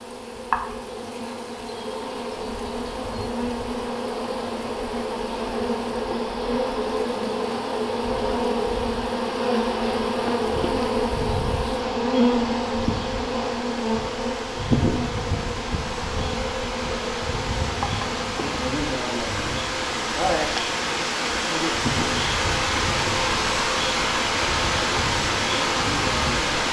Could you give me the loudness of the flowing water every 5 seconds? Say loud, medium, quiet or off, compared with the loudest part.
quiet, quiet, quiet, medium, loud, loud.